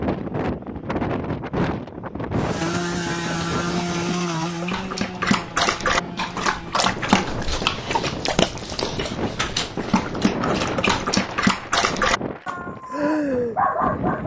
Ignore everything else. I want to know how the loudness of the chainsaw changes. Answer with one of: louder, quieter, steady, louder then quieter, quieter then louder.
quieter.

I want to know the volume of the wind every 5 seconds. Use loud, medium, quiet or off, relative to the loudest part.
loud, medium, loud.